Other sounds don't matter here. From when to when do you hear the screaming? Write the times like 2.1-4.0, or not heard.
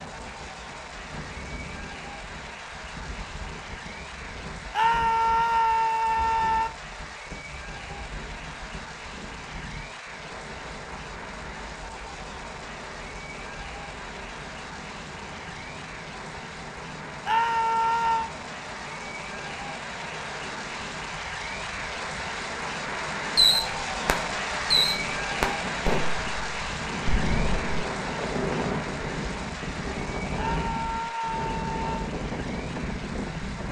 4.7-6.7, 17.2-18.3, 30.4-31.9.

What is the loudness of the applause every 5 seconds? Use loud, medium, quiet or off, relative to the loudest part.
medium, medium, medium, medium, loud, loud, medium.